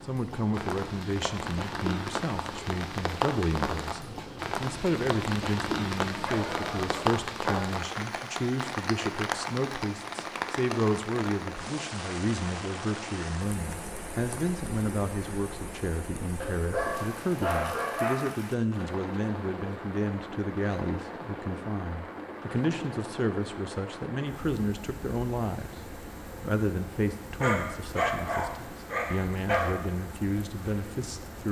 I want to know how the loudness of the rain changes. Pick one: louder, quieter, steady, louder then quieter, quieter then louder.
quieter.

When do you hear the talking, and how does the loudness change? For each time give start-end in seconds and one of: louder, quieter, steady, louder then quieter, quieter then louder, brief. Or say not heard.
0.1-31.4 steady.